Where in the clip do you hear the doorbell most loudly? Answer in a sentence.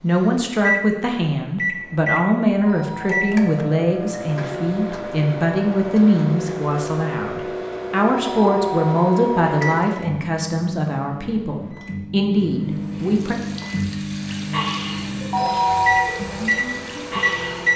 The loudest moment of the doorbell is at 16 seconds.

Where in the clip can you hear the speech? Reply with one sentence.
You can hear the speech from 0.0 to 13.3 s.